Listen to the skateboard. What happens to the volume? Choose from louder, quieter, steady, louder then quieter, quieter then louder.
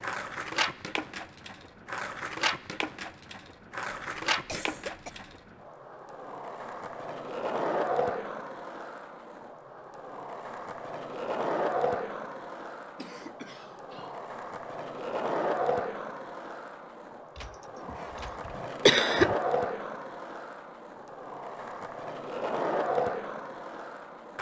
steady.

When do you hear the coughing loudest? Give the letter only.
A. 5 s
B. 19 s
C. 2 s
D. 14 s
B.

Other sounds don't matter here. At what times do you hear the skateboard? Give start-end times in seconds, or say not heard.
0.0-24.3.